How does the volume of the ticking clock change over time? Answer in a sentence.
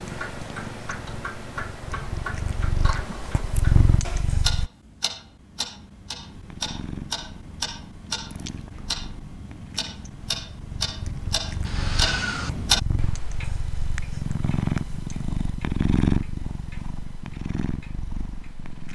The loudness of the ticking clock goes up, then down.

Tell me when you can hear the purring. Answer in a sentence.
You can hear the purring from 0.0 to 4.7 s and from 6.3 to 18.8 s.